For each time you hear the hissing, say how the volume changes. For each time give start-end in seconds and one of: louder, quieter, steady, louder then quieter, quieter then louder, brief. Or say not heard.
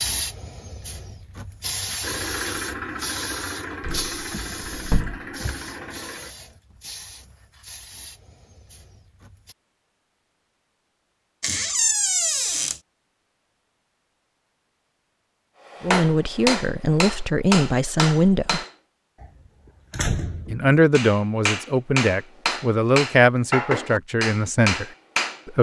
0.0-9.6 quieter.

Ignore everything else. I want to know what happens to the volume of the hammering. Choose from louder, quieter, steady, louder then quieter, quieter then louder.
steady.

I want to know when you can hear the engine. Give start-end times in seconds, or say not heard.
2.0-6.3.